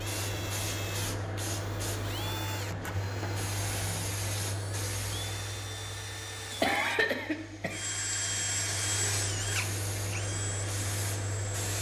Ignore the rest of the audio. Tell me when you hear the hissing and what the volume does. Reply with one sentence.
The hissing can be heard from 0.0 to 11.7 s, getting quieter then louder.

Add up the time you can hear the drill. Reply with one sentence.
You can hear the drill for 12 seconds altogether.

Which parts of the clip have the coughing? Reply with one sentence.
You can hear the coughing from 6.6 to 7.8 s.